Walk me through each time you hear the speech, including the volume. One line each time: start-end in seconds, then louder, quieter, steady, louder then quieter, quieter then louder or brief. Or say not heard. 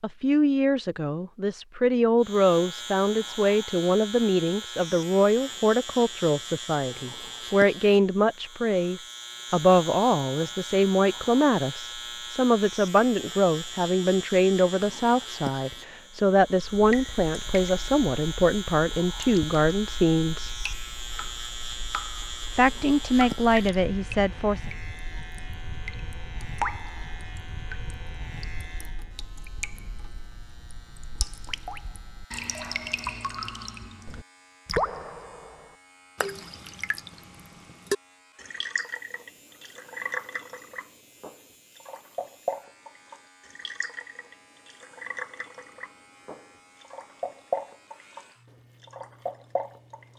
0.0-20.5 steady
22.6-24.7 brief.